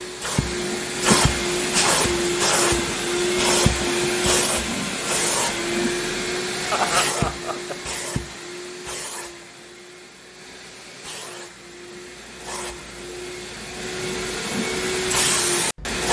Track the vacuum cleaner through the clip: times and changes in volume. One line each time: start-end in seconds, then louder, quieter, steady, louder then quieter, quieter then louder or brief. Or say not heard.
0.0-16.0 quieter then louder.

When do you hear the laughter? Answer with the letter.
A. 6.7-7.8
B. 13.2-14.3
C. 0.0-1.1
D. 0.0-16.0
A.